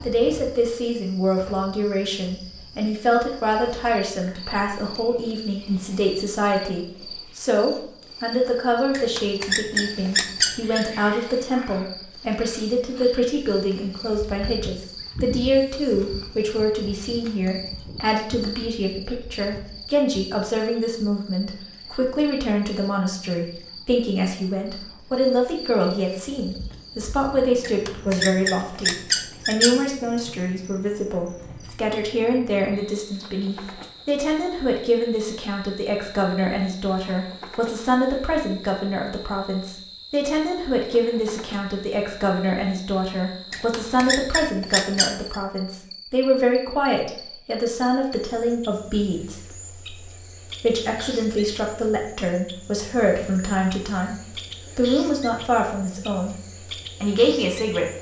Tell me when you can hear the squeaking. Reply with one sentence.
The squeaking can be heard from 8.9 to 10.8 s, from 27.6 to 29.8 s and from 43.5 to 45.4 s.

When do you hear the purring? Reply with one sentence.
You can't hear the purring here.